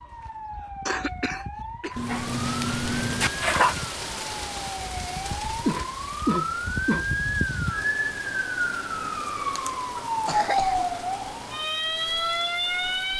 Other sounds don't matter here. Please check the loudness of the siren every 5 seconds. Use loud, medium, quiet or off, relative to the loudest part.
medium, loud, loud.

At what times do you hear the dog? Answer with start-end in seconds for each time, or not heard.
1.9-3.8.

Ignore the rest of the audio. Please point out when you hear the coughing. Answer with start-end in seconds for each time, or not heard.
0.8-1.9, 5.7-7.1, 9.9-10.9.